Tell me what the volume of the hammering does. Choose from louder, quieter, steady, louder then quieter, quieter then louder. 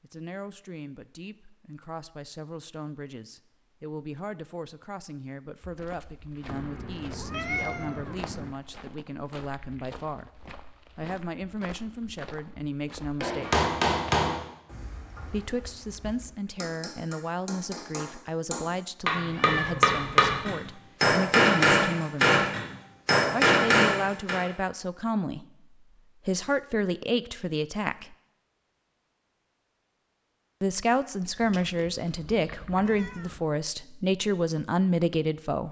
quieter then louder.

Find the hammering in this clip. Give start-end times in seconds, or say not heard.
13.2-24.4.